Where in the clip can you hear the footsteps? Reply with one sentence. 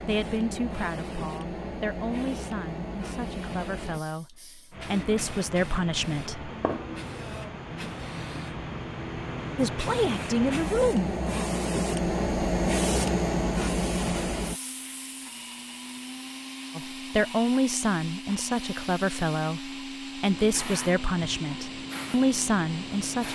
You can't hear the footsteps here.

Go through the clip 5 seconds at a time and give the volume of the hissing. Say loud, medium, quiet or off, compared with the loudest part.
medium, medium, loud, quiet, quiet.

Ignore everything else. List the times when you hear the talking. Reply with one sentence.
You can hear the talking from 0.1 to 6.5 s, from 9.6 to 11.2 s and from 16.8 to 23.3 s.